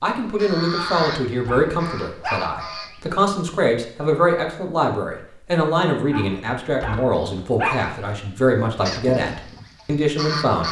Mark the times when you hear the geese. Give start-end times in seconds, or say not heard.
0.0-3.2, 7.8-10.6.